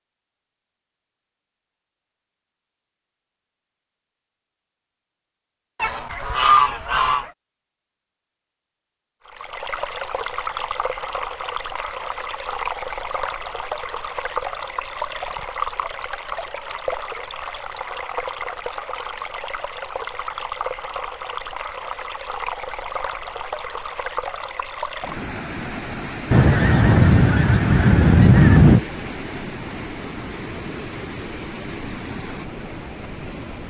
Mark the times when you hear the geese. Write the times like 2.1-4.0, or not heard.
5.8-7.3, 26.3-28.8.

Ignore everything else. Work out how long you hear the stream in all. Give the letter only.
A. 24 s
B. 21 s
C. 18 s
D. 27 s
A.